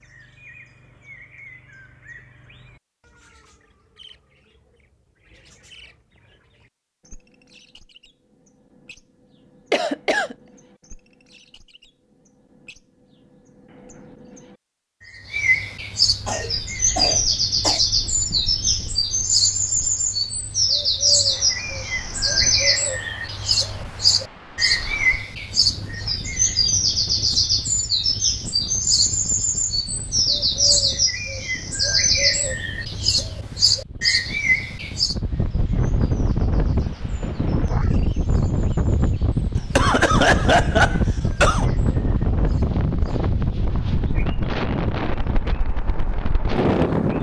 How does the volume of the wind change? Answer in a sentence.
The volume of the wind goes up.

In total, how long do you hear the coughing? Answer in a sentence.
The coughing can be heard for 4 seconds in total.